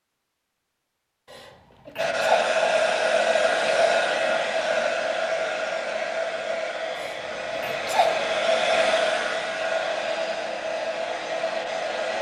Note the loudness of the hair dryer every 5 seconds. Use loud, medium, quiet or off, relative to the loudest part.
loud, loud, medium.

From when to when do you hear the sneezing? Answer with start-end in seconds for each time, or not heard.
1.3-2.5, 7.0-8.3.